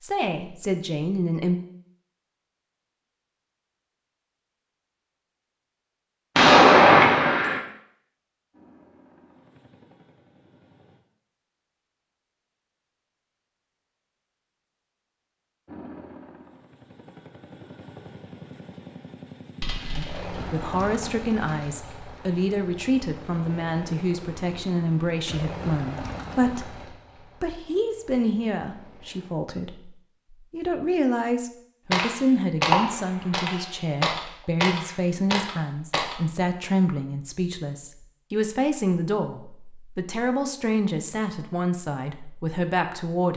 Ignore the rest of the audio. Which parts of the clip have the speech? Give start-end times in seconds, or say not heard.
0.0-1.6, 19.9-43.3.